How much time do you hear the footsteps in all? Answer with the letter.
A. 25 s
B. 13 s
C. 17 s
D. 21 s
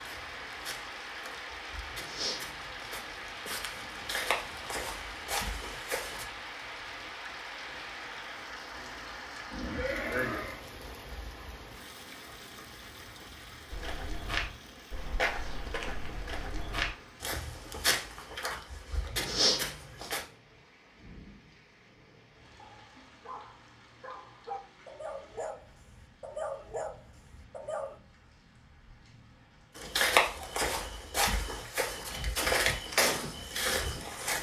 C.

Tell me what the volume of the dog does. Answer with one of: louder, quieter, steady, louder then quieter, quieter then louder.
louder.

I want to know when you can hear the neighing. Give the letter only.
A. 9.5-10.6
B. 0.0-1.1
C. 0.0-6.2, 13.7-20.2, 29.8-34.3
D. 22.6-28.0
A.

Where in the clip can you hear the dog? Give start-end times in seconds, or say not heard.
22.6-28.0.